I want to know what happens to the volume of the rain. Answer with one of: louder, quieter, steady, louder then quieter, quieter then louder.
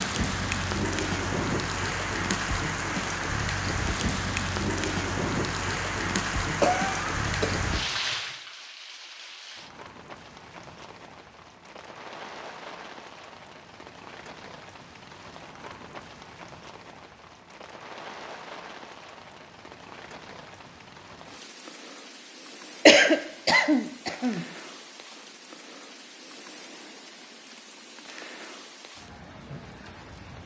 quieter.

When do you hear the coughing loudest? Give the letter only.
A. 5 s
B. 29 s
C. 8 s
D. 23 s
D.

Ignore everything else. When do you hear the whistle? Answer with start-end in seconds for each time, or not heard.
not heard.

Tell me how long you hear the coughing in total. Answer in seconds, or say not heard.
3 s.